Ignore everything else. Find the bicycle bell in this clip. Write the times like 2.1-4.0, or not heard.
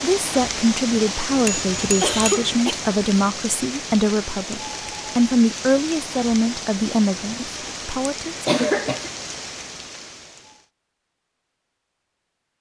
1.4-2.5.